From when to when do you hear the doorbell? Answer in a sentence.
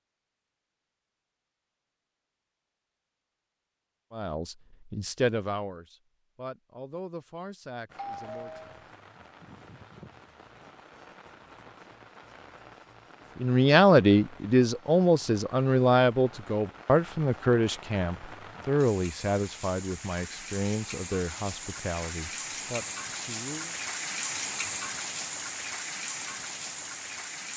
You can hear the doorbell from 8.0 to 8.8 s.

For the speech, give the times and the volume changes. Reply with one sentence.
The speech can be heard from 4.2 to 8.7 s, getting quieter; and from 13.4 to 23.8 s, getting quieter.